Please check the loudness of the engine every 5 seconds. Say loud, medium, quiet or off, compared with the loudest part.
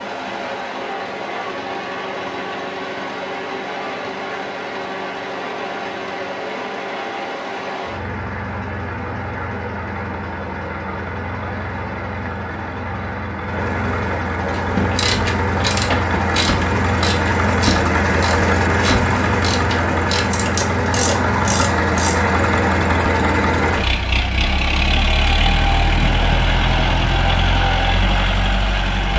medium, medium, medium, loud, loud, loud.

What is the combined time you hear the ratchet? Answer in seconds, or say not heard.
8 s.